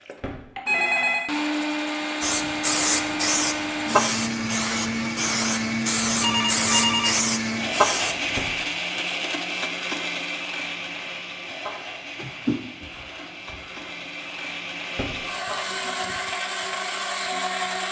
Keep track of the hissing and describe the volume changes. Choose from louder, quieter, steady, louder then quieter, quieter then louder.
quieter.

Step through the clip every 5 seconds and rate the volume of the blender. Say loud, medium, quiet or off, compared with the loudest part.
loud, loud, medium, loud.